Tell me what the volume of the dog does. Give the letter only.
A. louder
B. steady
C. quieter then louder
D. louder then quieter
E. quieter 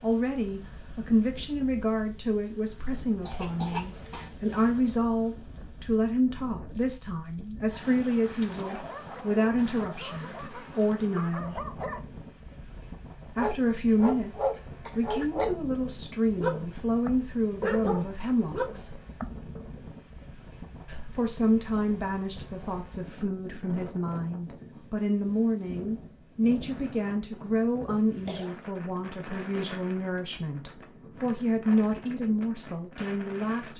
A.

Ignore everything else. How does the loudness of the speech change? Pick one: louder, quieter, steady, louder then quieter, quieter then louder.
steady.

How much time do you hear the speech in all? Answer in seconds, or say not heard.
30 s.